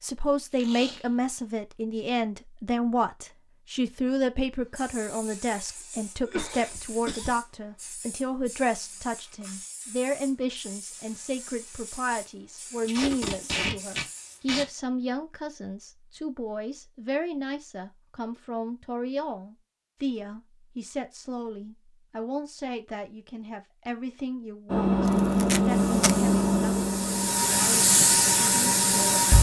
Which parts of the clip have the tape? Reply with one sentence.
You can hear the tape from 0.5 to 1.1 s, from 12.8 to 14.7 s and from 25.4 to 26.1 s.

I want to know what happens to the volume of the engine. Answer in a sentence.
The loudness of the engine goes down.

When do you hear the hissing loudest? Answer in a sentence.
The volume of the hissing peaks at 28 seconds.